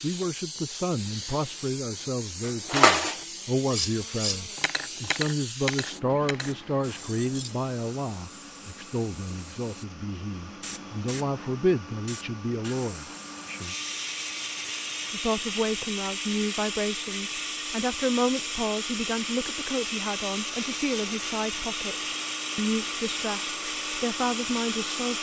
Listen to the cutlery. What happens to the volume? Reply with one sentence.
The loudness of the cutlery goes down.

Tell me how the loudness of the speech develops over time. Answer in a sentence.
The volume of the speech stays about the same.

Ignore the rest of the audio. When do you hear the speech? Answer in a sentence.
The speech can be heard from 0.0 to 13.1 s and from 15.1 to 25.1 s.